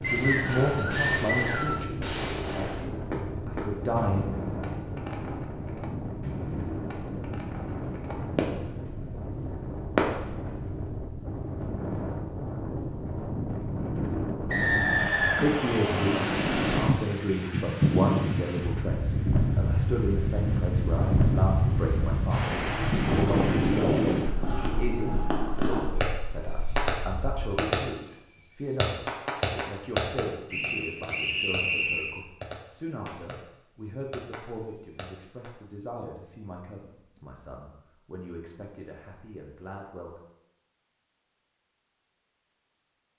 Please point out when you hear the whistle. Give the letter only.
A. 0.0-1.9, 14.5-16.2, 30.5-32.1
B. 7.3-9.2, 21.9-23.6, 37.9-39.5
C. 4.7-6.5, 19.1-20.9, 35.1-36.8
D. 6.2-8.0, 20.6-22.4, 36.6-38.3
A.